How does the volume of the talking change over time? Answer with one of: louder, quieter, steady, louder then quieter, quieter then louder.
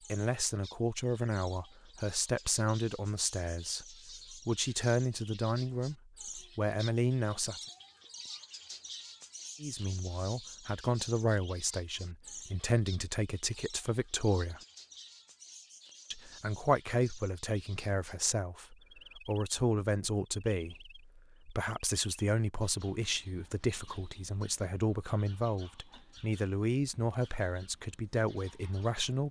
steady.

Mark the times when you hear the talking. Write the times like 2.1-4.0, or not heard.
0.1-7.7, 9.6-14.6, 16.1-29.2.